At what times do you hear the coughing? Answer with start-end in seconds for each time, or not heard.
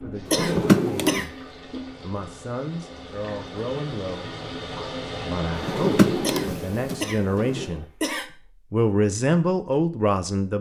0.3-1.3, 6.2-8.3.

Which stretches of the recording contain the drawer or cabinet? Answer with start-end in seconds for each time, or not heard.
0.2-1.2, 5.5-7.7.